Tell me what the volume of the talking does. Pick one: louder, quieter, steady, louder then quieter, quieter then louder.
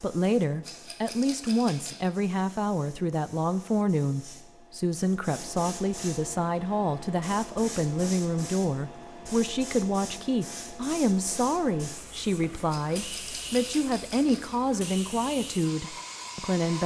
steady.